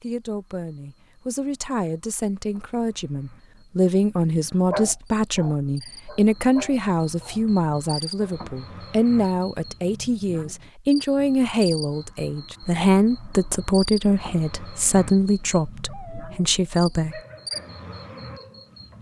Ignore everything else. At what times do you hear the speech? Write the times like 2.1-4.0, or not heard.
0.0-17.2.